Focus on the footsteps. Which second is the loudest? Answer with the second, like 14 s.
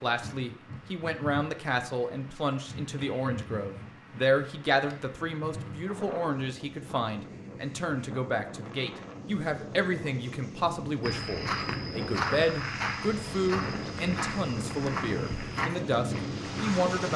12 s.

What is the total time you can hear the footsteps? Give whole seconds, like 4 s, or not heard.
6 s.